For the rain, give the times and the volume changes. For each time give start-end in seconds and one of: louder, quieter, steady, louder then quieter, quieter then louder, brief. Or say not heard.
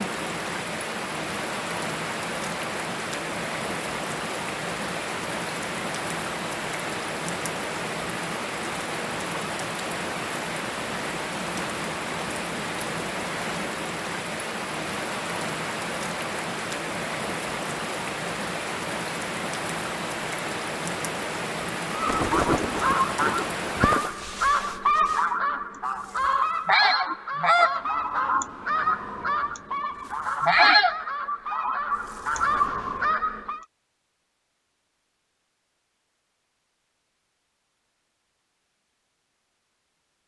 0.0-24.2 steady.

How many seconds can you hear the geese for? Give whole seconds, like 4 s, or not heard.
12 s.